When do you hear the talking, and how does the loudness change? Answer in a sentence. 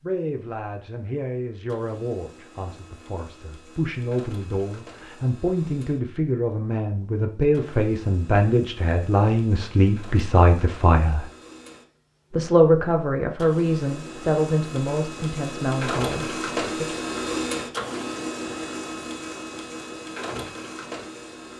You can hear the talking from 0.0 to 11.2 s, getting louder; and from 12.3 to 17.0 s, getting quieter.